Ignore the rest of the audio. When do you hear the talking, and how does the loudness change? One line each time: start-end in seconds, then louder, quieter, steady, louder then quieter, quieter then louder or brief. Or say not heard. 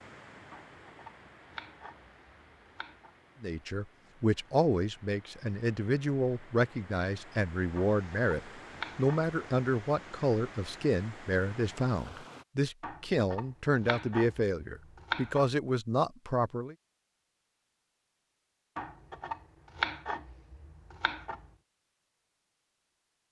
3.4-16.8 steady.